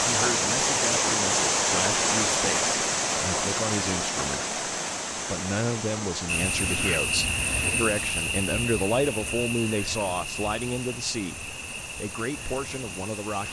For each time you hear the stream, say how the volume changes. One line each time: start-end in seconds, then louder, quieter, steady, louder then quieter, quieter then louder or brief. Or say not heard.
0.0-13.4 quieter.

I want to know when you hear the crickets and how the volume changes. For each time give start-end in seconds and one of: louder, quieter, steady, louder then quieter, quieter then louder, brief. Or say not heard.
6.2-13.4 quieter.